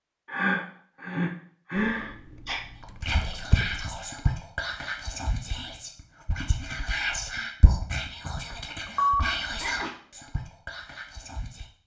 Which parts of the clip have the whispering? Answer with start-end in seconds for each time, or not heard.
2.8-11.7.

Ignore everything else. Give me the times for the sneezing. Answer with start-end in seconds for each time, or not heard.
0.3-2.6, 8.9-9.9.